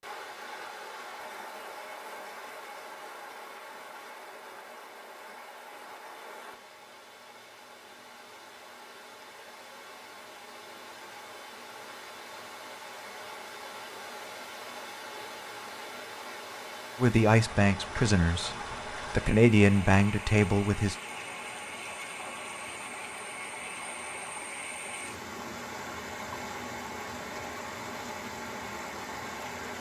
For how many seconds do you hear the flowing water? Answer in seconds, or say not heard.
30 s.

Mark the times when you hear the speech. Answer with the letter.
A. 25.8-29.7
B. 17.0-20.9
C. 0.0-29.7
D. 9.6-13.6
B.